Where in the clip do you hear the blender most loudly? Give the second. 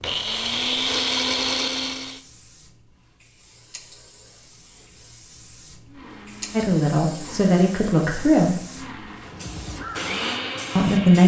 1 s.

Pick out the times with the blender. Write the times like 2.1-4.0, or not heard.
0.0-2.2, 5.8-11.2.